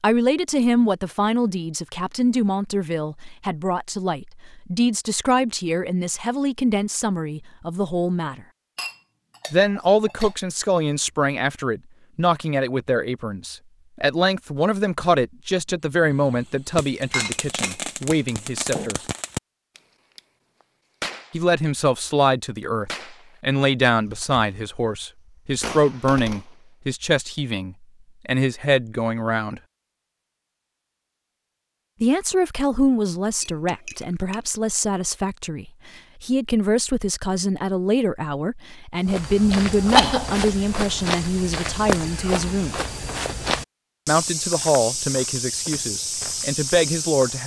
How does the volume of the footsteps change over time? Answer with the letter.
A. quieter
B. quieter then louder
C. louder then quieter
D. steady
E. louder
D.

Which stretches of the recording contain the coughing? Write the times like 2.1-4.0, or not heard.
39.5-40.5.